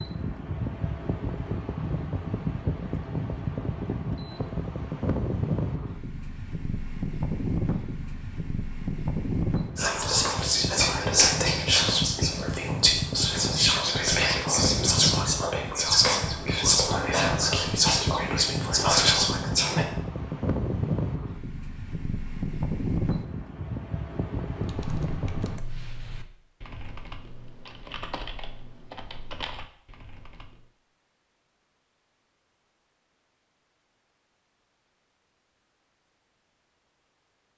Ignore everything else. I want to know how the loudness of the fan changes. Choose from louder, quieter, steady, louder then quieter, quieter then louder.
steady.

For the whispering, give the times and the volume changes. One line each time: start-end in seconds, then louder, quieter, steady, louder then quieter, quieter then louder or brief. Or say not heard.
9.8-19.9 steady.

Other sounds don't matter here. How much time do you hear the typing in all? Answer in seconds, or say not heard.
6 s.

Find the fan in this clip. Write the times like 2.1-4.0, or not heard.
0.0-25.6.